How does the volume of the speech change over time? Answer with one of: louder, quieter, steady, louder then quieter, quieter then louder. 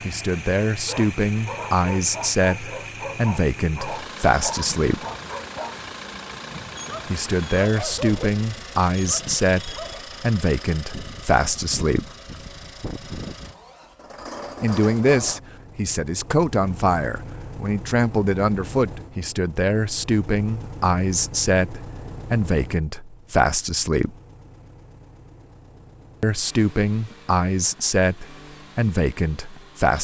steady.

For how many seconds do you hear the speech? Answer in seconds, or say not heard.
23 s.